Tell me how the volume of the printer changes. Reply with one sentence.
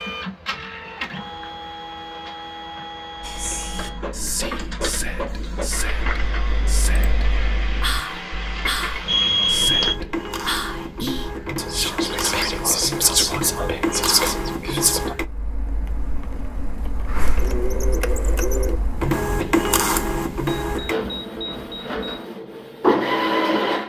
The volume of the printer goes up.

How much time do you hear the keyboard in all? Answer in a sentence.
The keyboard can be heard for 6 seconds in total.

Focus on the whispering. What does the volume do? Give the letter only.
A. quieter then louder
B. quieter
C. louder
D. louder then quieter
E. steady
C.